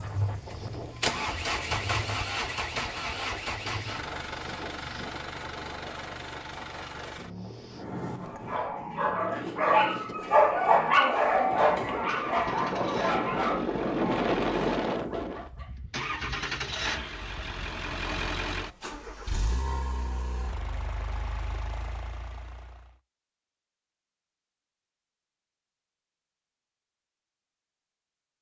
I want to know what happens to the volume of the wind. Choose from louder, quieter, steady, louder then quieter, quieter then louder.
louder.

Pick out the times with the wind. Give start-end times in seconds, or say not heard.
0.0-15.5.